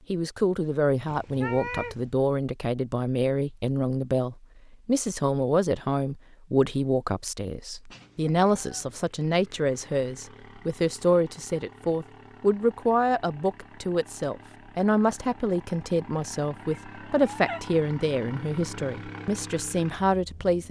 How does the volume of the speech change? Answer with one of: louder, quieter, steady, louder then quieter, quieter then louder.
steady.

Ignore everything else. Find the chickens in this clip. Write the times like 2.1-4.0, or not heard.
not heard.